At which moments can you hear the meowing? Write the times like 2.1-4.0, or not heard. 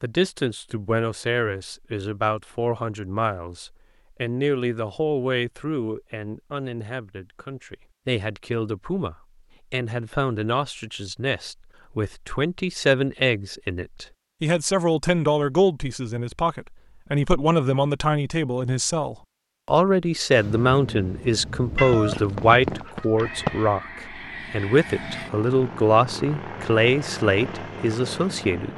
21.8-23.7.